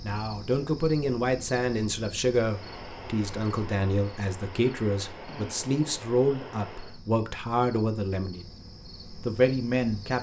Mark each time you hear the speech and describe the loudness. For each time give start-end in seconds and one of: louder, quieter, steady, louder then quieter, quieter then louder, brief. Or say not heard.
0.0-8.4 steady
9.2-10.1 brief.